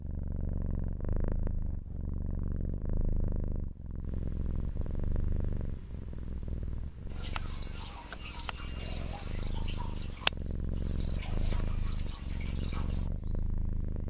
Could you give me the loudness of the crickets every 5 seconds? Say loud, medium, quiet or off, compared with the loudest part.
medium, loud, loud.